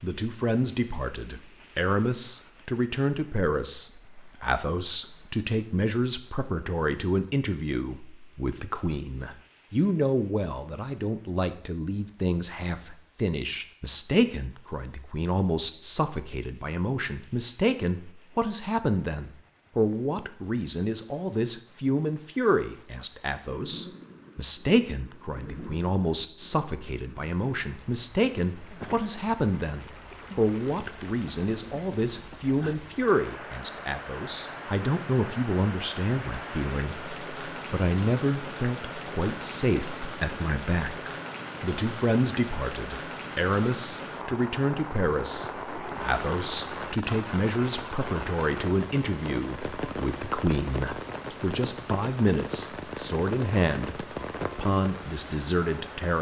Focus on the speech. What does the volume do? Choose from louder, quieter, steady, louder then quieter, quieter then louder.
steady.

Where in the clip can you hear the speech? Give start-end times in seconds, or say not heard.
0.0-56.1.